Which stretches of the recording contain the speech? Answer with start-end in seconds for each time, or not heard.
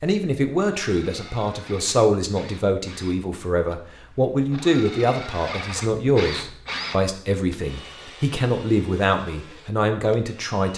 0.0-10.7.